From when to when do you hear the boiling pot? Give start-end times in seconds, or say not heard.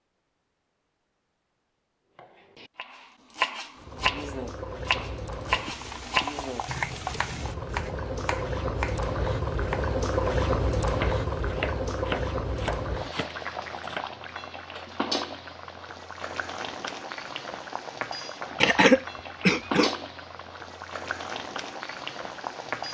3.8-22.8.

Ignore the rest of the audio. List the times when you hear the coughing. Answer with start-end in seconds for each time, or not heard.
18.6-19.9.